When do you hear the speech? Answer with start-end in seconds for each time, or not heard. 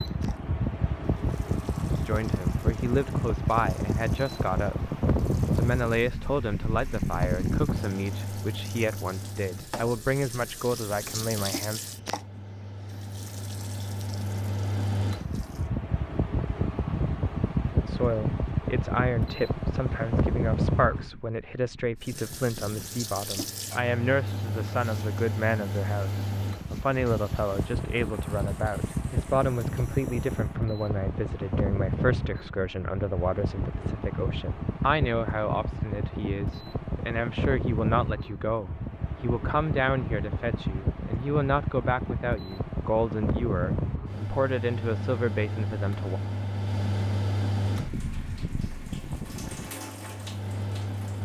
2.0-11.8, 17.8-46.2.